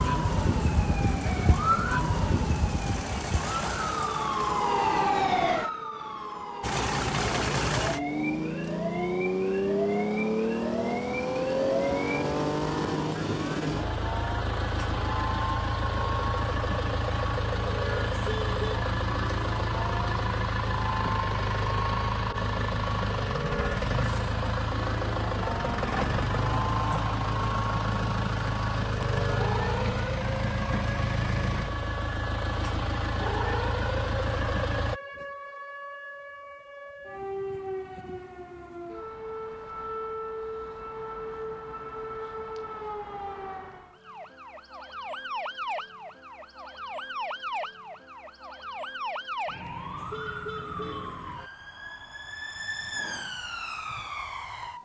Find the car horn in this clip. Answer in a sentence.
You can hear the car horn from 18.1 to 18.8 s and from 50.0 to 51.2 s.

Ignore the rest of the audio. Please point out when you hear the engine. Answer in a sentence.
You can hear the engine from 0.0 to 5.0 s and from 6.6 to 35.0 s.